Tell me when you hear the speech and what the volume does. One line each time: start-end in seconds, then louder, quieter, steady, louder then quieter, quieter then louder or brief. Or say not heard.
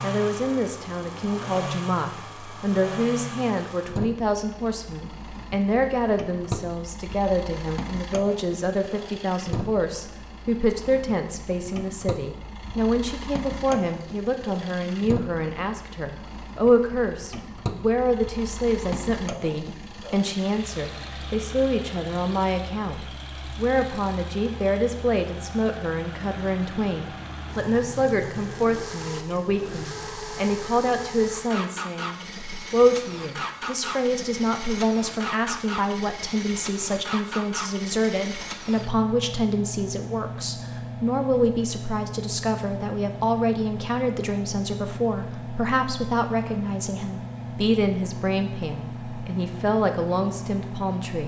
0.0-51.2 steady.